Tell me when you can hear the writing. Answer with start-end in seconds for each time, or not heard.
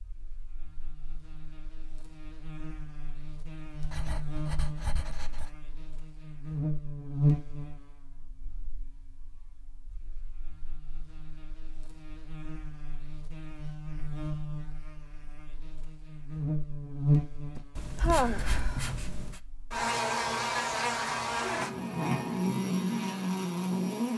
3.8-5.5, 17.8-19.4.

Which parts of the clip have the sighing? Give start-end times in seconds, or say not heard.
17.6-18.9.